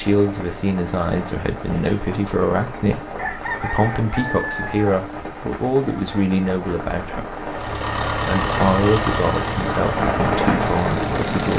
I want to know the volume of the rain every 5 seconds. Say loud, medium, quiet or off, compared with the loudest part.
medium, medium, loud.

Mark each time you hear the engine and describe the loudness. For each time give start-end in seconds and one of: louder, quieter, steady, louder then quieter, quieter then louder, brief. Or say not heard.
7.5-11.5 quieter.